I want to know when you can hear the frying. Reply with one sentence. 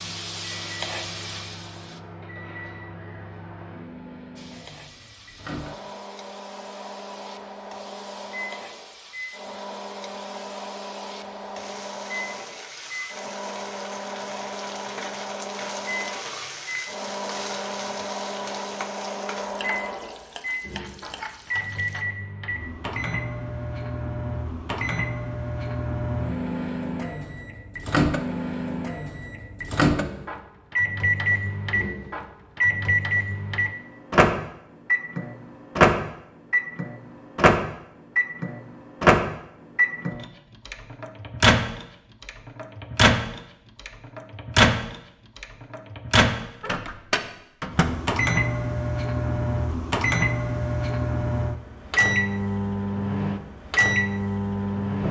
The frying can be heard from 0.0 to 2.0 s and from 4.3 to 22.1 s.